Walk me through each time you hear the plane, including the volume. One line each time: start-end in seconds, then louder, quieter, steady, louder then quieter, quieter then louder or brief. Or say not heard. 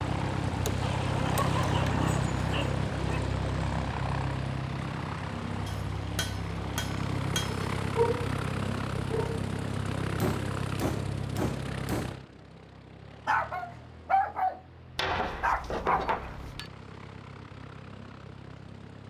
0.0-19.0 quieter.